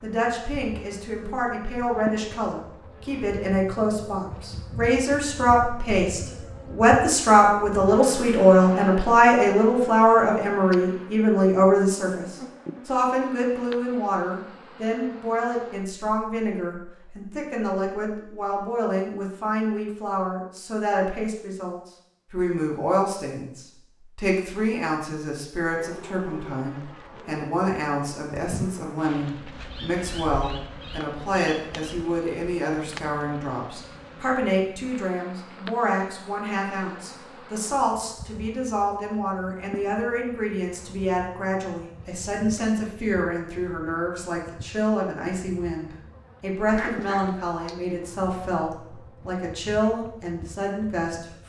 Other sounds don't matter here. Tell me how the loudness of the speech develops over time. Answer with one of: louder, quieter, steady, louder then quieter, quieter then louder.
quieter.